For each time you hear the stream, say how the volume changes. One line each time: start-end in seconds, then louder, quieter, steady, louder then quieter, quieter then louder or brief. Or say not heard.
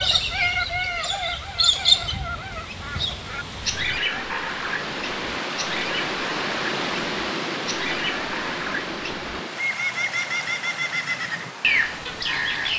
0.0-12.7 louder then quieter.